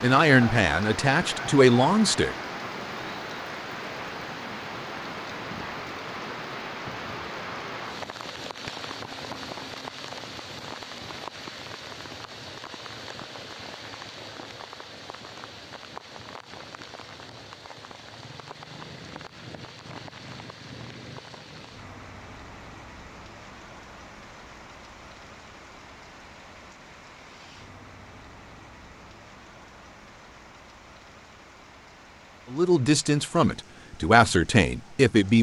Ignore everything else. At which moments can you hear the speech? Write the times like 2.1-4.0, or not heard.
0.0-2.4, 32.5-35.3.